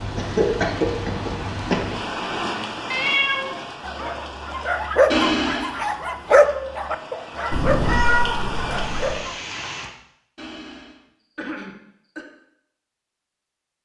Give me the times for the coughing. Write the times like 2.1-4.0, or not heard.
0.1-1.9, 5.1-5.8, 10.3-12.2.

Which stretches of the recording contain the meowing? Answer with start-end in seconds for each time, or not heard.
2.9-3.5, 7.5-9.2.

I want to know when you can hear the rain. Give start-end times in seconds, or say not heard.
0.0-9.9.